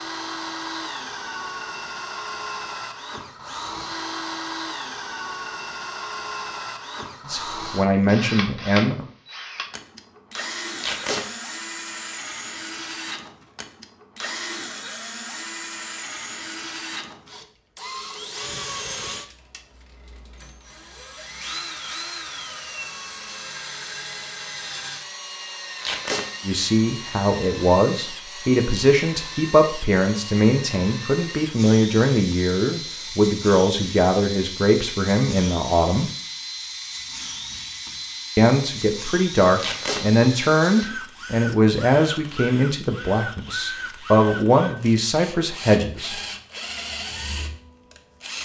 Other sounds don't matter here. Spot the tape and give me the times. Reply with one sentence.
You can hear the tape from 10.8 to 11.2 s, from 25.8 to 26.2 s and from 39.5 to 40.0 s.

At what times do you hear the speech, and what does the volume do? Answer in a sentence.
The speech can be heard briefly from 7.2 to 9.1 s; from 26.4 to 36.1 s, at a steady volume; and from 38.4 to 46.1 s, at a steady volume.